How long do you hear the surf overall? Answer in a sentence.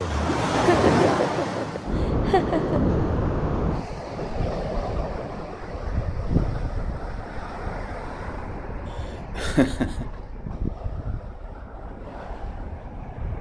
The surf can be heard for 13 seconds in total.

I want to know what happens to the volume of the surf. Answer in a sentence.
The volume of the surf goes down.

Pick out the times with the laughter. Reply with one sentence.
You can hear the laughter from 0.6 to 3.0 s and from 9.3 to 10.1 s.